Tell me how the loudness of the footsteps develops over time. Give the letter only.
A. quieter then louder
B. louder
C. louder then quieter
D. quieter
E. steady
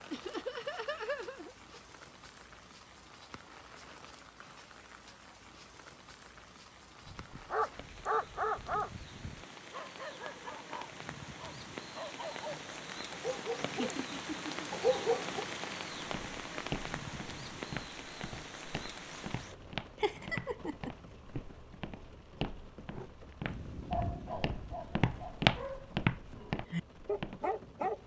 B.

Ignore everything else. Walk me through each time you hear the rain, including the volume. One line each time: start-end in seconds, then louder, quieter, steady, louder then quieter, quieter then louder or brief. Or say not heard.
0.0-28.0 louder then quieter.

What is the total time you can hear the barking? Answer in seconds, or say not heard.
13 s.